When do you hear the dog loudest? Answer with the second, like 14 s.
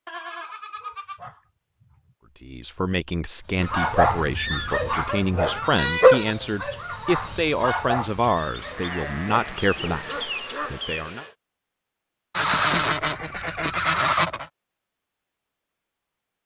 6 s.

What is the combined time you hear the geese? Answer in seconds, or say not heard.
5 s.